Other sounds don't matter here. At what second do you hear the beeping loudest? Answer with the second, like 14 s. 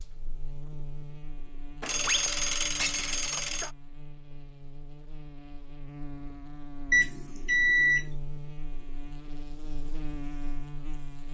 8 s.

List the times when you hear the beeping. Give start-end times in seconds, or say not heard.
1.8-3.7, 6.9-8.1.